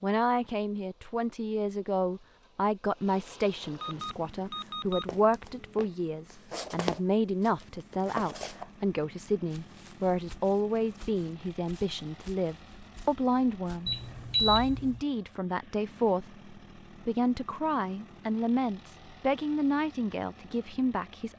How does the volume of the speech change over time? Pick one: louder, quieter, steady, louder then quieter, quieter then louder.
steady.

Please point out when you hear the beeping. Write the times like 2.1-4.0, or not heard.
3.8-5.8, 13.8-15.0.